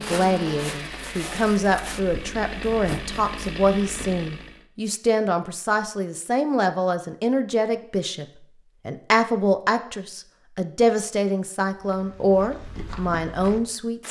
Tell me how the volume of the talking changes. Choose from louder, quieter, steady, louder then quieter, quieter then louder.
steady.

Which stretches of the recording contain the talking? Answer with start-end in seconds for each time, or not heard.
0.0-8.2, 8.8-14.0.